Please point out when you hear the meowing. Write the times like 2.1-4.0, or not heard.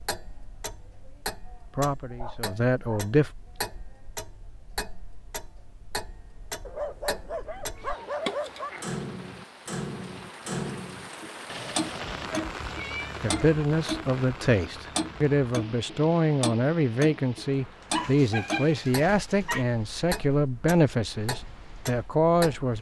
7.2-8.7, 11.4-13.2.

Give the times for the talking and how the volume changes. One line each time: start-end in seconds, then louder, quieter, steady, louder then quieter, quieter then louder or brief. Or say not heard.
1.8-3.3 brief
13.2-22.7 steady.